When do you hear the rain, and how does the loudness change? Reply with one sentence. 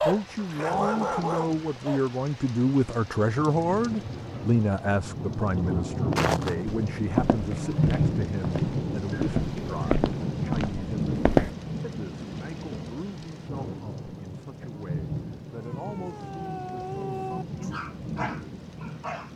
You can hear the rain from 0.0 to 19.3 s, getting louder then quieter.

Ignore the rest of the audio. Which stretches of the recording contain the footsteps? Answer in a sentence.
The footsteps can be heard from 6.1 to 11.5 s.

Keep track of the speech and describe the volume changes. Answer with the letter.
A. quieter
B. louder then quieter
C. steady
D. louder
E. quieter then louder
A.